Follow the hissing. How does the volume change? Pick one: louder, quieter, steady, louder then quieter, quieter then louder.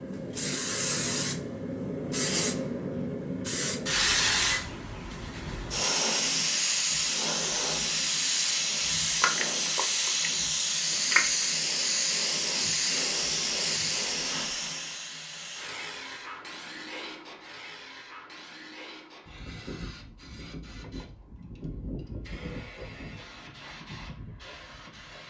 quieter.